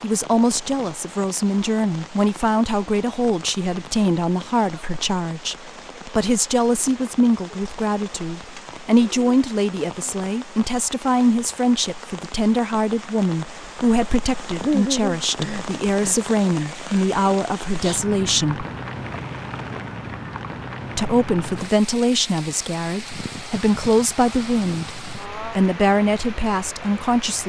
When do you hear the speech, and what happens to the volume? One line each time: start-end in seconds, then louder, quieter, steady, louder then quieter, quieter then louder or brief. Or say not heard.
0.0-18.6 steady
20.9-27.4 quieter then louder.